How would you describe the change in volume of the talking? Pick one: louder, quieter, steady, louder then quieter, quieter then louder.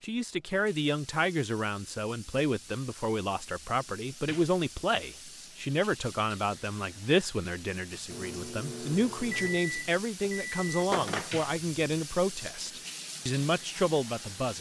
steady.